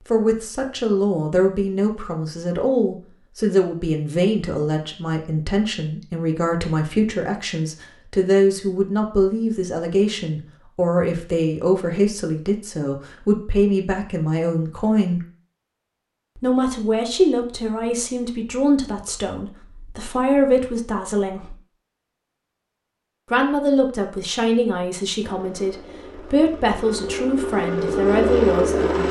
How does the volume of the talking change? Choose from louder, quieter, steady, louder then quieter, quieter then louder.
steady.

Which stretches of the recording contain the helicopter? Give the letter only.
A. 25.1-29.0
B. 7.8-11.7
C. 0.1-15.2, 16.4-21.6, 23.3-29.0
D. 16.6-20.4
A.